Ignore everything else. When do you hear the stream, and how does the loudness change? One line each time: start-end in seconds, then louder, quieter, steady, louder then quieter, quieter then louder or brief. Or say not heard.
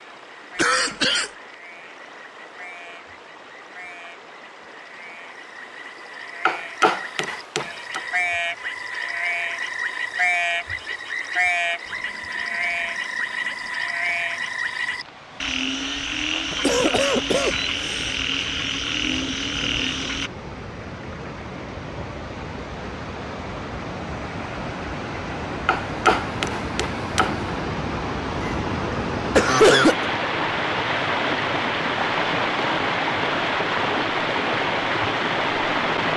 0.0-36.1 louder.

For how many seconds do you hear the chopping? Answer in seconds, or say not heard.
3 s.